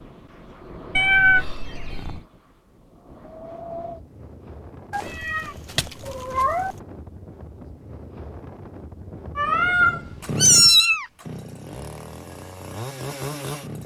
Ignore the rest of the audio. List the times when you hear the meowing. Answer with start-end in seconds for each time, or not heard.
0.9-2.2, 4.9-6.8, 9.3-11.1.